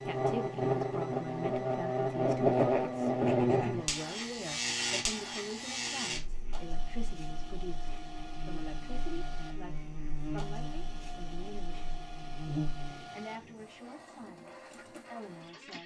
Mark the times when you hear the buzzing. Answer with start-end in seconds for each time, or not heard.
0.0-13.1.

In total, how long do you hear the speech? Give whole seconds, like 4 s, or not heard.
16 s.